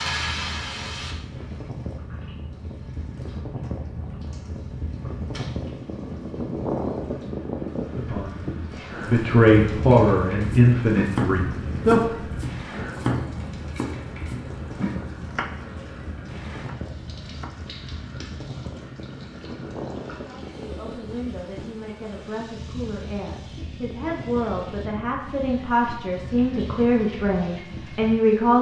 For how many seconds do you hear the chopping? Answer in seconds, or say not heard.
6 s.